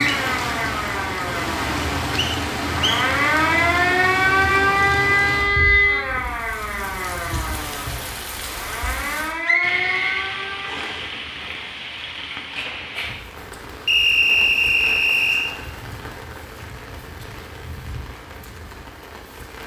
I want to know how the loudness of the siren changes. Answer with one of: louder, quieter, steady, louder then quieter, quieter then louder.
louder then quieter.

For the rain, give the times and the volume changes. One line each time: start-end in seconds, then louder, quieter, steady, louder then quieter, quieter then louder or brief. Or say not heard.
0.0-19.6 quieter.